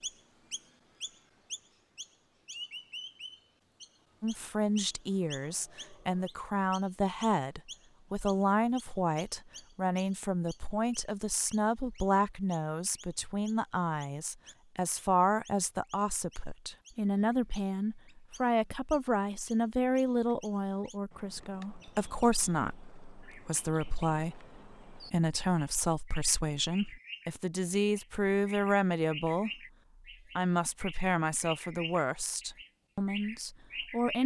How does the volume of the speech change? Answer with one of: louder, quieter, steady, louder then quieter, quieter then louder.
steady.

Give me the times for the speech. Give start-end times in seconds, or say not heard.
4.2-29.5, 30.4-34.2.